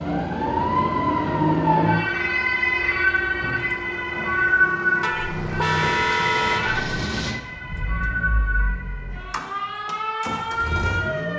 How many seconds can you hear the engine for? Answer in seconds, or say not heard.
11 s.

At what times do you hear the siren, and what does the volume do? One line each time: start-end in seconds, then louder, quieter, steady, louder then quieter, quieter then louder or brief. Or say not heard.
0.0-11.3 quieter.